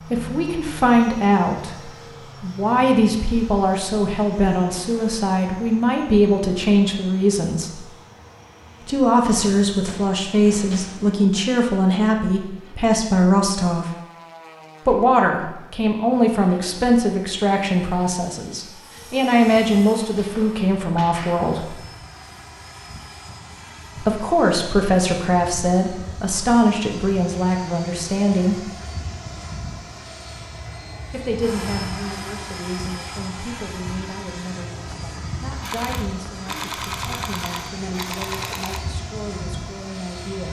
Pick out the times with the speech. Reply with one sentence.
You can hear the speech from 0.1 to 7.8 s, from 8.8 to 13.9 s, from 14.8 to 21.7 s, from 23.9 to 28.6 s and from 31.1 to 40.4 s.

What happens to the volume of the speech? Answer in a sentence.
The loudness of the speech goes down.